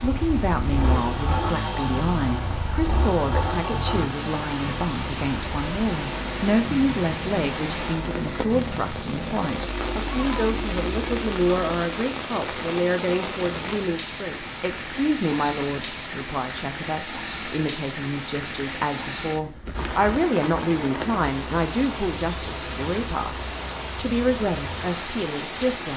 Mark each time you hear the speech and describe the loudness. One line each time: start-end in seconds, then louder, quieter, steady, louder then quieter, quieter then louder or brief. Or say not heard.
0.0-25.9 steady.